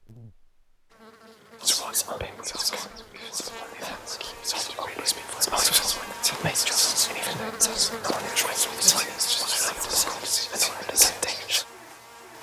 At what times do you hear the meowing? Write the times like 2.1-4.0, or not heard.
not heard.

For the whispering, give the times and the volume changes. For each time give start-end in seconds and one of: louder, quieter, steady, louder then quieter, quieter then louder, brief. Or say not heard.
1.6-11.7 louder.